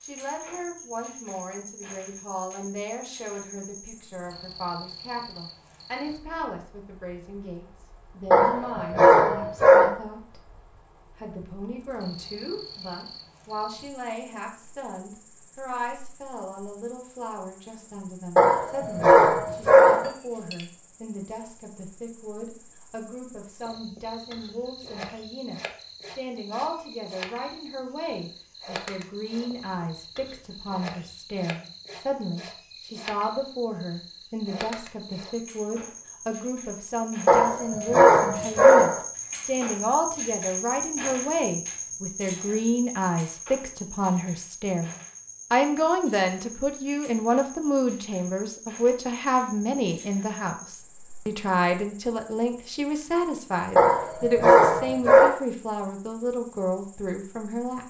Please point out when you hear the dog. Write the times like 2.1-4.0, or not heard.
8.3-9.9, 18.4-20.1, 37.2-39.0, 53.8-55.3.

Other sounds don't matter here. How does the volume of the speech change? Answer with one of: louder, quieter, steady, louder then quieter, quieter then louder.
louder.